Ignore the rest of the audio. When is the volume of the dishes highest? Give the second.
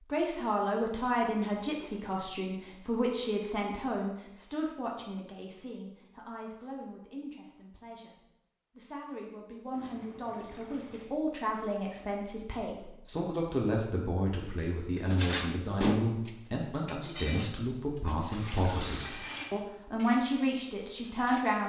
16 s.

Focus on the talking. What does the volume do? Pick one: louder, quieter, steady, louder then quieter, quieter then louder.
quieter then louder.